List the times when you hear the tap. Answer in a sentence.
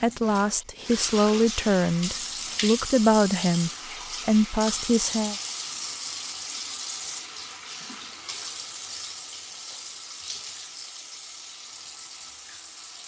The tap can be heard from 0.0 to 13.0 s.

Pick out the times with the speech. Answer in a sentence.
You can hear the speech from 0.0 to 5.3 s.